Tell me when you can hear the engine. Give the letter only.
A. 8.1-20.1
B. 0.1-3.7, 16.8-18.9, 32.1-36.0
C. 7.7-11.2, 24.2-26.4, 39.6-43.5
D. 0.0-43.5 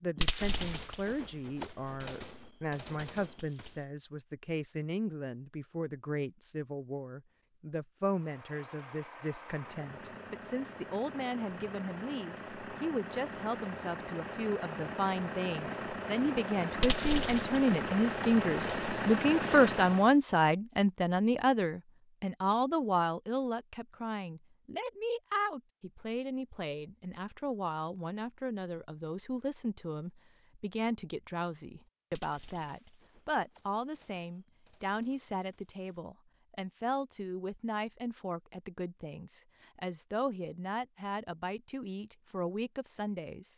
A.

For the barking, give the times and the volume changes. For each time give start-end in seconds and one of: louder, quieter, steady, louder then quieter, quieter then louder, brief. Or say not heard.
not heard.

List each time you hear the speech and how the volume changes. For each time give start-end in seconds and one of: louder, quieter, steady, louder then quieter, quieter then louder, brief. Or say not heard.
0.0-43.5 louder then quieter.